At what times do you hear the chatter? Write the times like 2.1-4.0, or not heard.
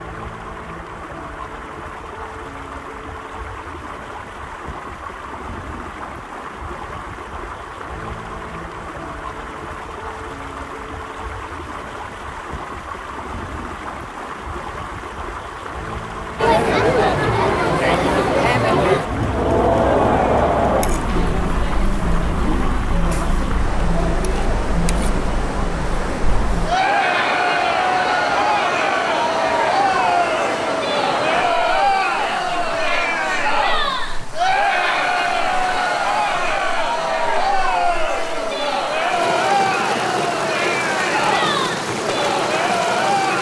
16.4-43.3.